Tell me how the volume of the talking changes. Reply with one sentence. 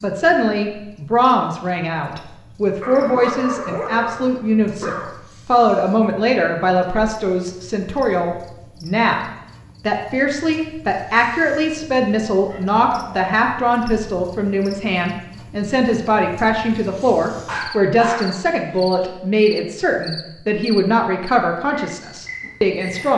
The loudness of the talking stays about the same.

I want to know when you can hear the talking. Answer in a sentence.
You can hear the talking from 0.0 to 9.2 s and from 9.8 to 23.1 s.